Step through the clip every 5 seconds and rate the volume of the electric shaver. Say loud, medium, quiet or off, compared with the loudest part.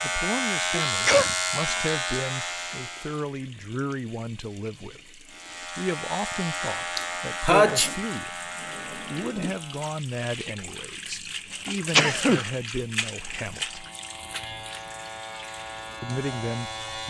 loud, medium, quiet, medium.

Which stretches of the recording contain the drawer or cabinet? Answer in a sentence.
The drawer or cabinet can't be heard in this clip.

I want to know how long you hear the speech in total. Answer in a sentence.
You can hear the speech for 15 seconds altogether.